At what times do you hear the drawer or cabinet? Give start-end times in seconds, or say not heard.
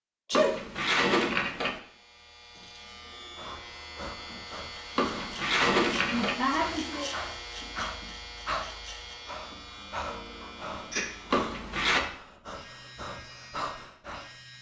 0.3-1.8, 5.0-6.4, 11.3-12.0.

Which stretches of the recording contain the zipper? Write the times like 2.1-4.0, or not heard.
not heard.